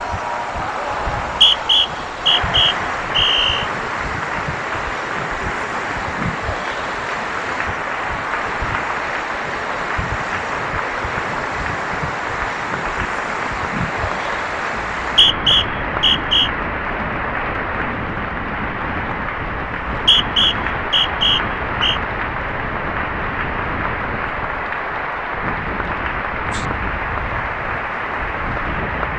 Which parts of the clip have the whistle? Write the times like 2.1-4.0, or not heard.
1.1-3.6, 14.8-16.5, 19.9-22.0.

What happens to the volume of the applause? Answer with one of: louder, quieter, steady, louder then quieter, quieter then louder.
steady.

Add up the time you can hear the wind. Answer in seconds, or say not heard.
29 s.